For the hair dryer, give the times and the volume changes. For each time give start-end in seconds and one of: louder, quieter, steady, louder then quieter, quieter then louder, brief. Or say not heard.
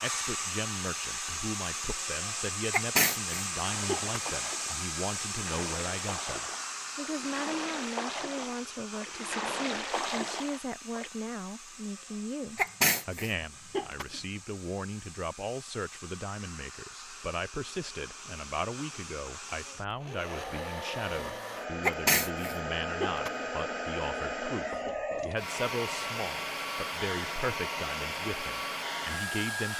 0.0-29.7 quieter then louder.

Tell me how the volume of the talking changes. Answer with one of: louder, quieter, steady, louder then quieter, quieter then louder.
steady.